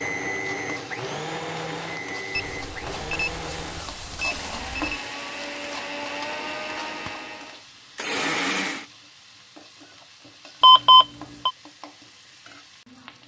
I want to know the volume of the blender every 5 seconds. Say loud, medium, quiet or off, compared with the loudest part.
loud, loud, off.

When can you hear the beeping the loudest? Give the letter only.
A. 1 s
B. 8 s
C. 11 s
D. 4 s
C.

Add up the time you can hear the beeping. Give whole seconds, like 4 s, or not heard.
4 s.